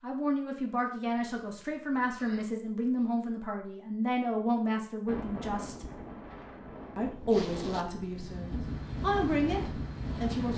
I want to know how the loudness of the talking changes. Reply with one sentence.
The volume of the talking stays about the same.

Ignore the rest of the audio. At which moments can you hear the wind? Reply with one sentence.
You can hear the wind from 5.0 to 10.5 s.